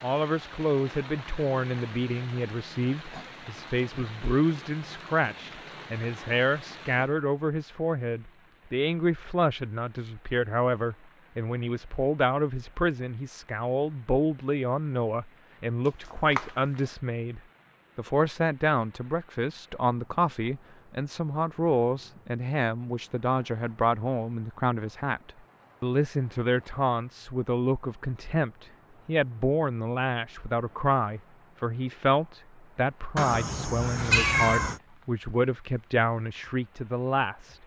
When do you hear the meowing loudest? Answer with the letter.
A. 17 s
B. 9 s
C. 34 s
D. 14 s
C.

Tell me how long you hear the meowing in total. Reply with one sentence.
The meowing can be heard for 2 seconds in total.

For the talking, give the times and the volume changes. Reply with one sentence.
The talking can be heard from 0.0 to 37.5 s, at a steady volume.